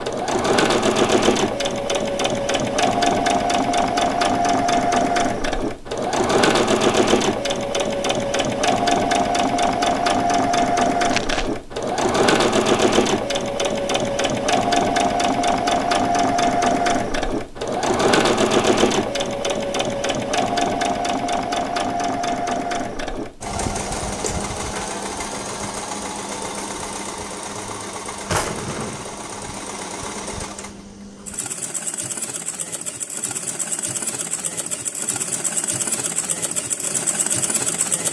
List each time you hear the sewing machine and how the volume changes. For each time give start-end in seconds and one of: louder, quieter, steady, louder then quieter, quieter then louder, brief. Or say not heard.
0.0-38.0 quieter.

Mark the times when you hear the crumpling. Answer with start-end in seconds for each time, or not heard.
11.1-11.5.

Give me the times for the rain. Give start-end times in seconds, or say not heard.
not heard.